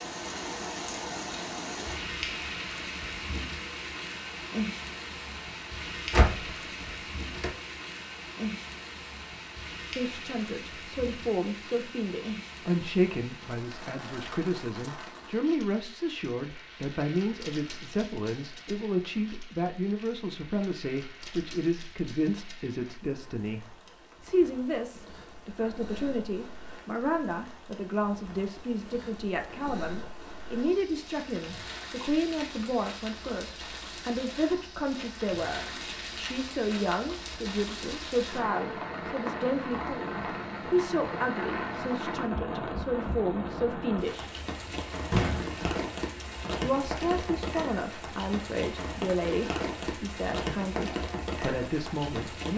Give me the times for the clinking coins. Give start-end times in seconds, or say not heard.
not heard.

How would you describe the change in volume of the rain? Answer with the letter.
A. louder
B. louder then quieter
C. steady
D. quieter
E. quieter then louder
E.